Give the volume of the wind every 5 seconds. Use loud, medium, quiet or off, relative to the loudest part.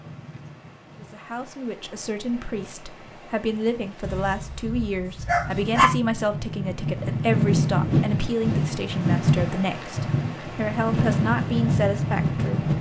quiet, loud, loud.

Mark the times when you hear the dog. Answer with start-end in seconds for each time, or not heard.
4.0-5.9.